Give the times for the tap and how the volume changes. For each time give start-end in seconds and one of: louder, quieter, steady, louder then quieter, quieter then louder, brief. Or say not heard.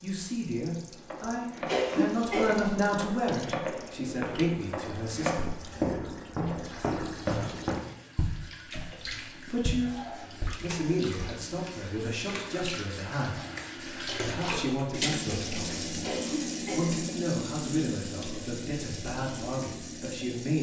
0.0-20.5 louder.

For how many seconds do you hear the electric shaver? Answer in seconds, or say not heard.
not heard.